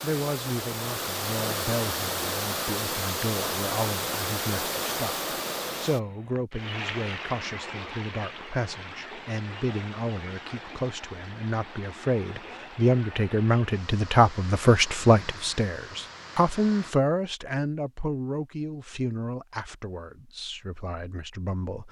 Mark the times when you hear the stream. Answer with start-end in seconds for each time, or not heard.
0.0-16.9.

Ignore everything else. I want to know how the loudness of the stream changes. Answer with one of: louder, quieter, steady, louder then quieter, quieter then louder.
quieter.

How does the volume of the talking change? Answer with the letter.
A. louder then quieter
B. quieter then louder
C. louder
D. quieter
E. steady
A.